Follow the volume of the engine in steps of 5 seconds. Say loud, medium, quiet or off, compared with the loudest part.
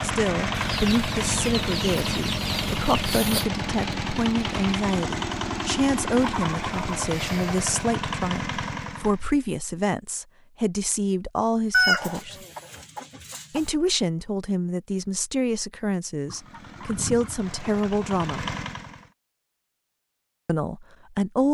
loud, loud, off, medium, off.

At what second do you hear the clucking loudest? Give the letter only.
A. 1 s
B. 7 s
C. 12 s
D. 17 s
C.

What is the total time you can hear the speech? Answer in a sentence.
The speech can be heard for 18 seconds in total.